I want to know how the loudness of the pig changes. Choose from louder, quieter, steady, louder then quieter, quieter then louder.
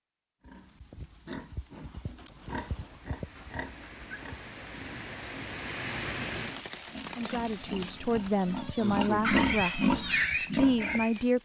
louder.